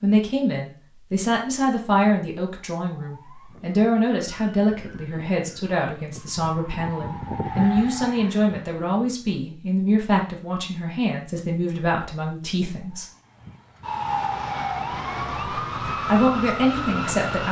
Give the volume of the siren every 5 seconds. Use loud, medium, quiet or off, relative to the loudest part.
quiet, medium, loud, loud.